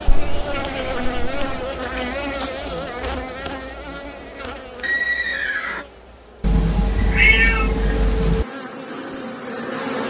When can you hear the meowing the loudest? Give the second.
7 s.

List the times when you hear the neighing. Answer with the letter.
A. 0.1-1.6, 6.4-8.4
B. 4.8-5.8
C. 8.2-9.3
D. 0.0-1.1
B.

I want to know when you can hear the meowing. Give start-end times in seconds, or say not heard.
0.1-1.6, 6.4-8.4.